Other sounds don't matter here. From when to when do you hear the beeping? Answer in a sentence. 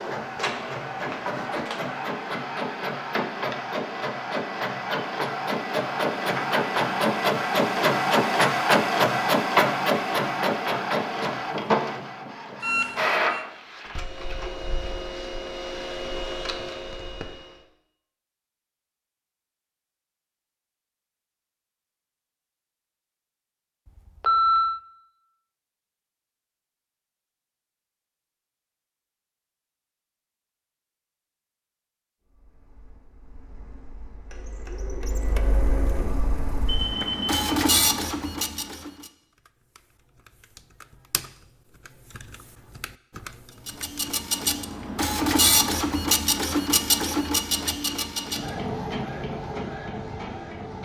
The beeping can be heard from 12.6 to 13.4 s, from 24.2 to 24.8 s and from 36.6 to 37.5 s.